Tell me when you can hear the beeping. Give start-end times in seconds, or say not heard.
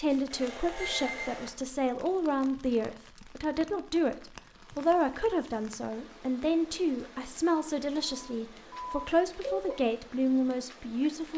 0.3-1.5, 8.0-9.8.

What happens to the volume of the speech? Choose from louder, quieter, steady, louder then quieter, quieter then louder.
steady.